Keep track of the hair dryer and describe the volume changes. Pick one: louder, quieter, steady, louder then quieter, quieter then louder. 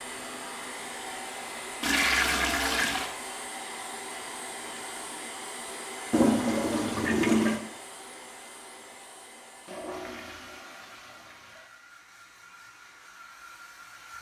quieter.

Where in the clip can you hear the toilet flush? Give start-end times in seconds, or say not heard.
1.8-3.1, 6.1-7.6, 9.7-11.7.